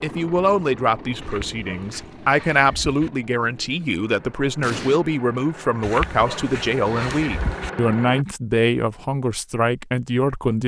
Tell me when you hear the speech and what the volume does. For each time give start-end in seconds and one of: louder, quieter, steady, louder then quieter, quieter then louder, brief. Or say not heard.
0.0-10.6 steady.